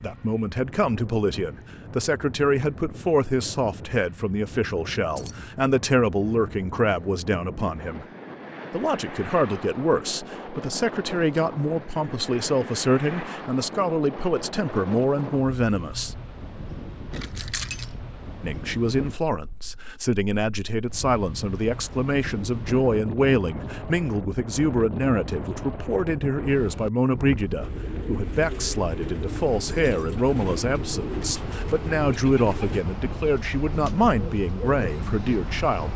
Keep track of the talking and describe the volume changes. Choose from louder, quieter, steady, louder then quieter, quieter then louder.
steady.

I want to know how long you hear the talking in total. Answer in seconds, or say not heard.
33 s.